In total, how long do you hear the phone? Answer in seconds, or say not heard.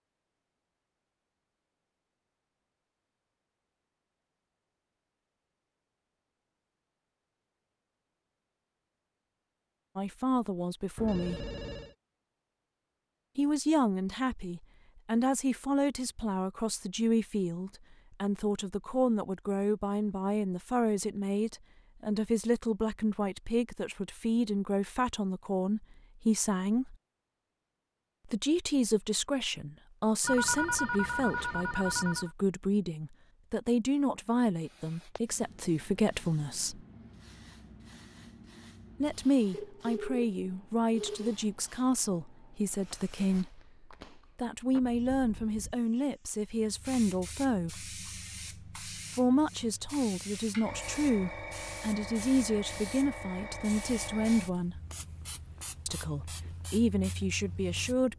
5 s.